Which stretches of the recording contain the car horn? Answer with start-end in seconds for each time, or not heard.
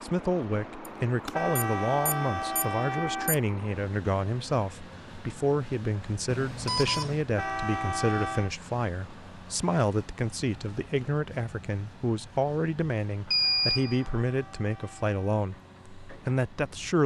1.3-3.4, 7.3-8.5, 13.4-15.4.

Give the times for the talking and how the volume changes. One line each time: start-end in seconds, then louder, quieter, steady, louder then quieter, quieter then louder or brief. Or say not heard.
0.0-17.0 steady.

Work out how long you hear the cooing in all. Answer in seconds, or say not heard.
not heard.